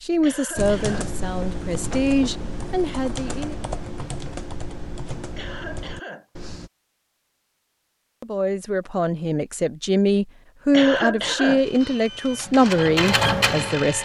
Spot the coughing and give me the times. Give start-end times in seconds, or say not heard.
0.2-1.1, 5.3-6.5, 10.7-12.0.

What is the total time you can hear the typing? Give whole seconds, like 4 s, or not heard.
6 s.